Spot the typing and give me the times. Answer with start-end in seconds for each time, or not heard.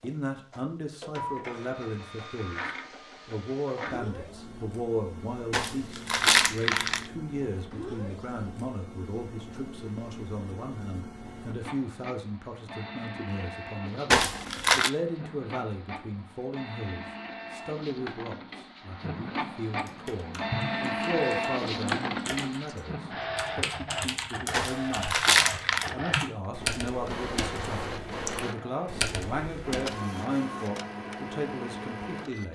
19.8-30.0.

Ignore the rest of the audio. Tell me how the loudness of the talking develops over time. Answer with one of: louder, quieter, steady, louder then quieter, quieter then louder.
steady.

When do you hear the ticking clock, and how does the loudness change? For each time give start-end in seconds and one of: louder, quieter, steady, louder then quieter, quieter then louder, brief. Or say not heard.
not heard.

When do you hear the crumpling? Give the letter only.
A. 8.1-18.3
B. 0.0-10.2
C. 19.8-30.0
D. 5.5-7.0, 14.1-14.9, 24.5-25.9
D.